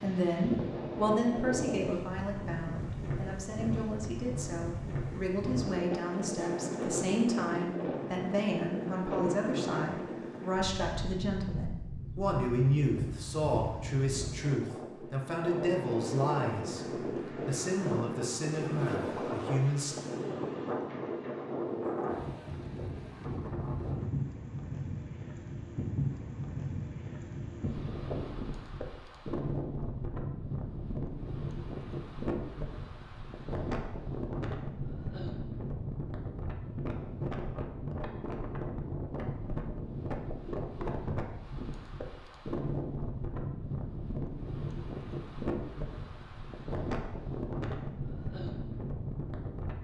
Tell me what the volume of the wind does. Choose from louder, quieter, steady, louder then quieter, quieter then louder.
steady.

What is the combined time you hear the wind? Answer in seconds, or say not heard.
50 s.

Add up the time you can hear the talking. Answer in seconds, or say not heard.
20 s.